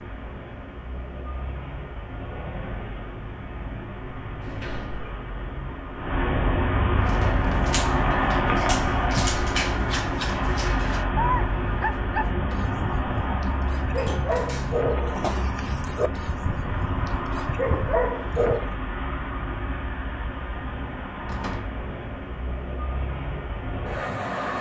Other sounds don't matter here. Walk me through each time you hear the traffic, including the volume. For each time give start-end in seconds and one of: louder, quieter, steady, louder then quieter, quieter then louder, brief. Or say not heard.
0.0-24.5 louder then quieter.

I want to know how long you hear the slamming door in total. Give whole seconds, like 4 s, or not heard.
2 s.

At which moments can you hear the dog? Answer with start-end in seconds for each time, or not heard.
7.0-18.7.